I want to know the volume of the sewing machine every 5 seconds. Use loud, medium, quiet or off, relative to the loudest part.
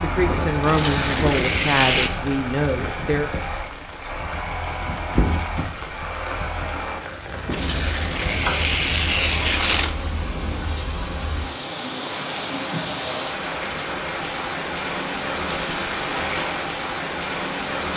loud, loud, off, off.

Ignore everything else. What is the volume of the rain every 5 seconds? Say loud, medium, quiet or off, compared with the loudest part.
medium, loud, loud, loud.